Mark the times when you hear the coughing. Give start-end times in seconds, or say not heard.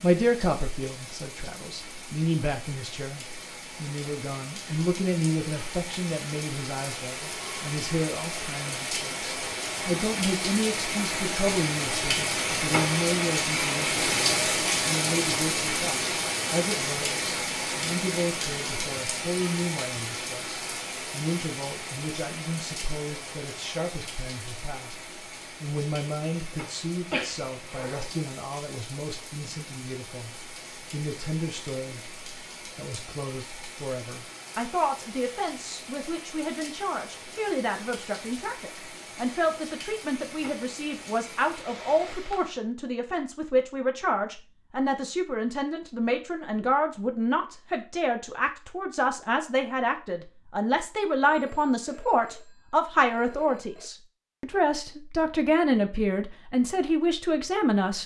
27.1-28.1.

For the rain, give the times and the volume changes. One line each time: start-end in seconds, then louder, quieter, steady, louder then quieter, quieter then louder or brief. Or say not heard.
0.0-42.6 louder then quieter.